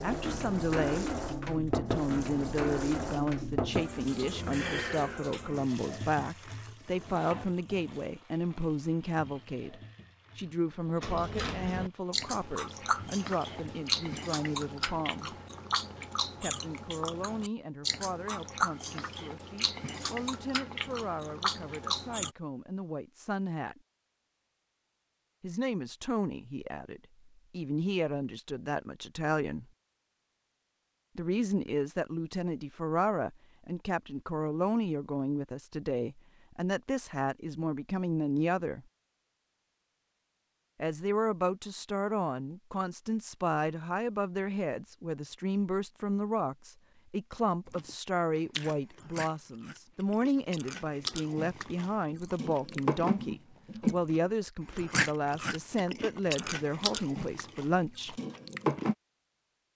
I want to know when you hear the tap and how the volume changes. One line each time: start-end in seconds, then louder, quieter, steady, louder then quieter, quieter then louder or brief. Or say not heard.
0.0-13.8 quieter.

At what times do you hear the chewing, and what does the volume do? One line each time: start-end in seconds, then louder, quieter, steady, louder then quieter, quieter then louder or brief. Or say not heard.
11.0-22.3 steady
47.7-59.0 louder then quieter.